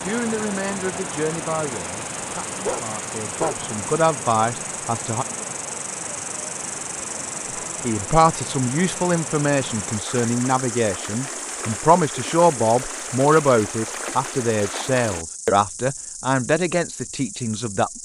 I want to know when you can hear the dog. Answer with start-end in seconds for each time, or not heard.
2.6-3.6.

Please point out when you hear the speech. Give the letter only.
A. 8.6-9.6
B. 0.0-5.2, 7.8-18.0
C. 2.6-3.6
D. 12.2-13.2
B.